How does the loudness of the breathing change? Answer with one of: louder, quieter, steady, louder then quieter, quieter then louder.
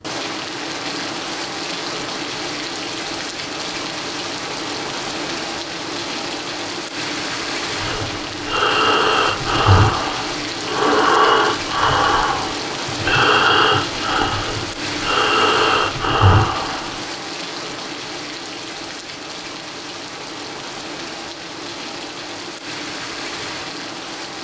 steady.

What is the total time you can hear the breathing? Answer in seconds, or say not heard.
9 s.